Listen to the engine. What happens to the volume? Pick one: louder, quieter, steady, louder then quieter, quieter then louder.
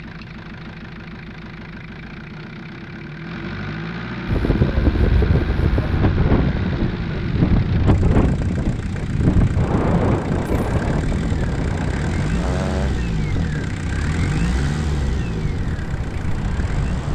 louder.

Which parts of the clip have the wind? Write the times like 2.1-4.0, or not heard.
4.2-17.1.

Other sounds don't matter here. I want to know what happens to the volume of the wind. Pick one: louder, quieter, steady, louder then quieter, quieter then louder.
quieter.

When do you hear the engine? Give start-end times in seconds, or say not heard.
0.0-17.1.